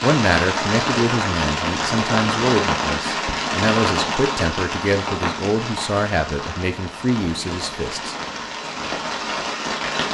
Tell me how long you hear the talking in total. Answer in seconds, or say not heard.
8 s.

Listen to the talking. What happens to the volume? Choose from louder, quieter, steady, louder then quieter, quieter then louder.
steady.